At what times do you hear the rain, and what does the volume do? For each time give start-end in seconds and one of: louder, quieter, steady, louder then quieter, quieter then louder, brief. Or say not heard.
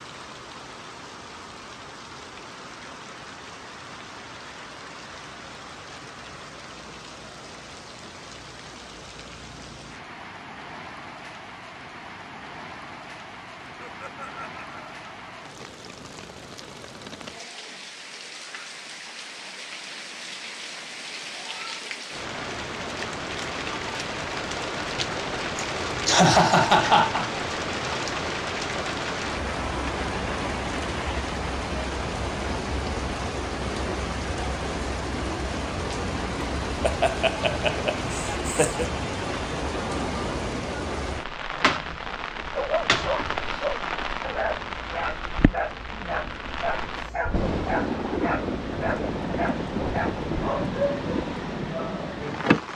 0.0-52.7 louder.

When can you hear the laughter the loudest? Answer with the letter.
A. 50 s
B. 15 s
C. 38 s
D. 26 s
D.